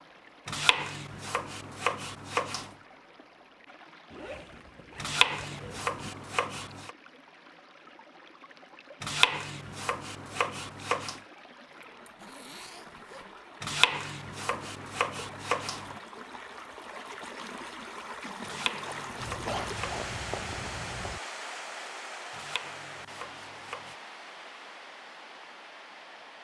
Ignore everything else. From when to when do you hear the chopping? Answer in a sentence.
You can hear the chopping from 0.5 to 2.7 s, from 5.0 to 6.9 s, from 9.0 to 11.2 s, from 13.6 to 15.9 s, from 18.4 to 19.9 s and from 22.3 to 23.9 s.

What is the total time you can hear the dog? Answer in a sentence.
The dog can't be heard in this clip.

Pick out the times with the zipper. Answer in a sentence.
You can hear the zipper from 4.1 to 6.1 s, from 11.8 to 13.3 s and from 19.2 to 21.2 s.